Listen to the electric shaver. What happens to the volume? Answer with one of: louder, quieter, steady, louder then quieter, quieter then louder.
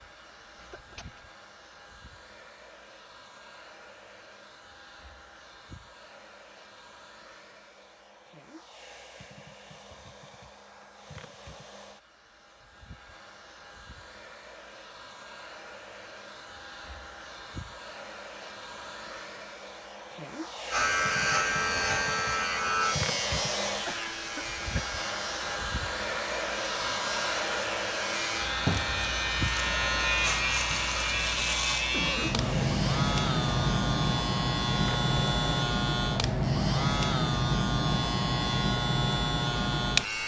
quieter then louder.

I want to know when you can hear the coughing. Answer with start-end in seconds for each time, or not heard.
0.6-1.2, 23.9-24.9, 31.9-32.7.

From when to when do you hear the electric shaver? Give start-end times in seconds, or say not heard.
20.7-40.2.